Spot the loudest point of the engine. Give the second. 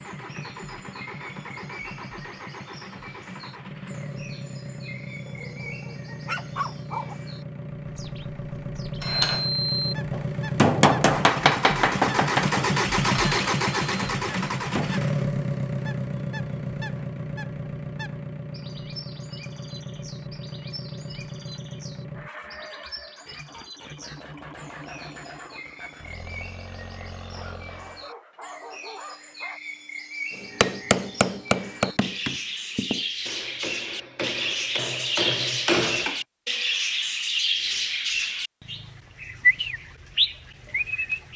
13 s.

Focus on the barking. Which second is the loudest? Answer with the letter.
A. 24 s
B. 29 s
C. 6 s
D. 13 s
C.